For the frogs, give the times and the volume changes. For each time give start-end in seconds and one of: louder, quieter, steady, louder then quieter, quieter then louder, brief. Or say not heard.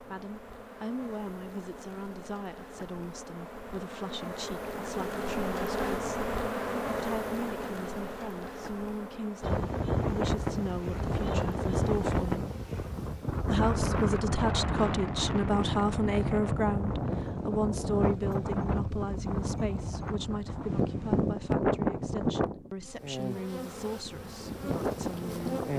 not heard.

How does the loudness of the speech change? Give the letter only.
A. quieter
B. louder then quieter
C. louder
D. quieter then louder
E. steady
B.